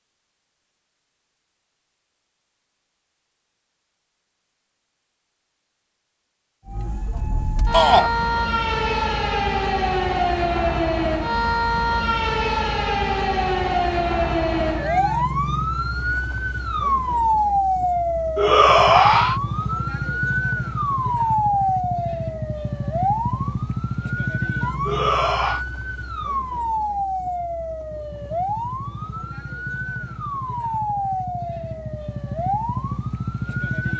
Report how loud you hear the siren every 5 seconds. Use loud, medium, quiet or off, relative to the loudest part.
off, loud, loud, loud, loud, medium, medium.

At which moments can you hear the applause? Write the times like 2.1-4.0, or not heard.
not heard.